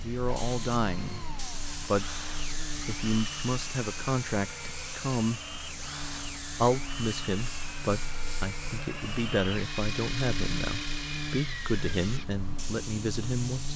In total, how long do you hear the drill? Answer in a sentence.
You can hear the drill for 12 seconds altogether.